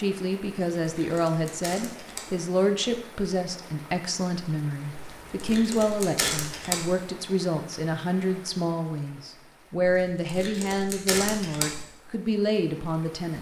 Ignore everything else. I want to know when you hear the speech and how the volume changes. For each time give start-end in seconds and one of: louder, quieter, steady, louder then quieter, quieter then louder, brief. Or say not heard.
0.0-13.3 steady.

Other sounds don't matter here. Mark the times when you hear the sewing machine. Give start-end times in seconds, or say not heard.
not heard.